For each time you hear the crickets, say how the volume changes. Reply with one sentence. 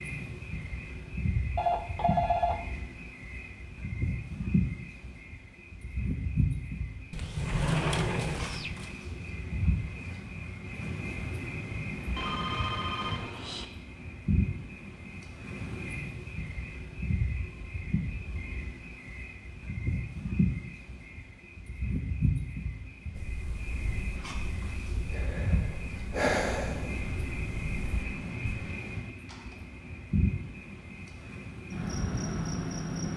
You can hear the crickets from 0.0 to 33.1 s, at a steady volume.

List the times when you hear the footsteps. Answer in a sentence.
You can't hear the footsteps here.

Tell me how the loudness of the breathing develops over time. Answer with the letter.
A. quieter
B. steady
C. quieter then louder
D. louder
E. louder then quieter
E.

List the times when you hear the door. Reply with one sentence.
You can hear the door from 7.1 to 8.9 s.